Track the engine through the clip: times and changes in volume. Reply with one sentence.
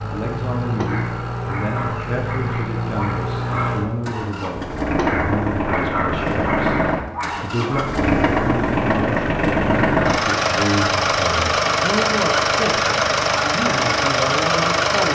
The engine can be heard from 0.0 to 15.1 s, getting louder.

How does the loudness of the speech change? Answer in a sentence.
The volume of the speech stays about the same.